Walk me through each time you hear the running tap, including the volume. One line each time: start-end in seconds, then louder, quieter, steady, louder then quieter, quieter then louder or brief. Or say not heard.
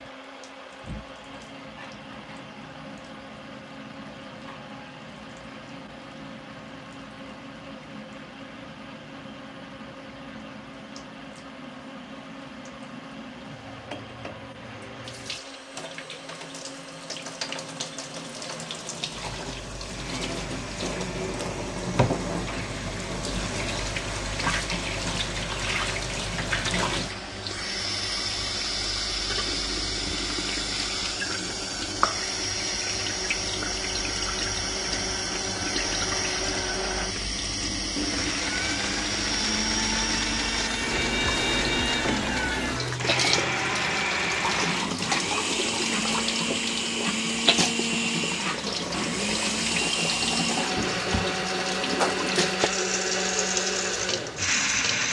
0.0-55.0 louder.